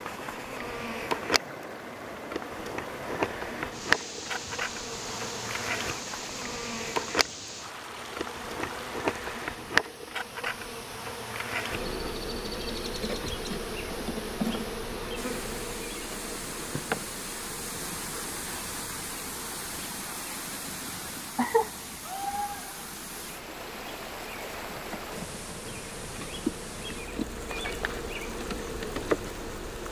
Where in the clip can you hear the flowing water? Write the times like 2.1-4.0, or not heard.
0.0-29.8.